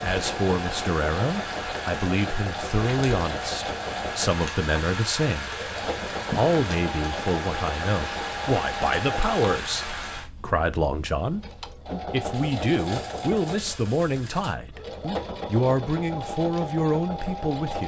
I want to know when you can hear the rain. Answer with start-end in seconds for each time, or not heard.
0.0-10.2.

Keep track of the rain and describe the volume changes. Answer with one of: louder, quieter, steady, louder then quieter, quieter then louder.
steady.